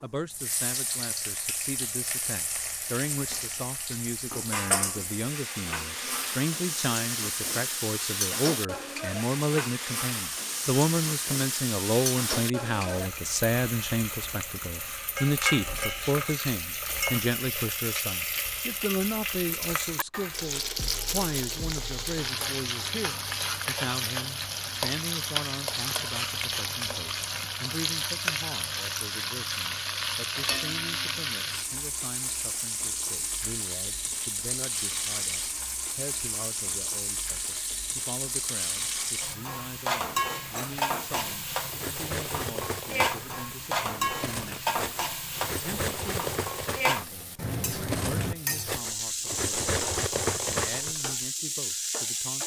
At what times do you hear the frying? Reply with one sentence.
You can hear the frying from 0.3 to 52.4 s.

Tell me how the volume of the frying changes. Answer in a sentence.
The volume of the frying stays about the same.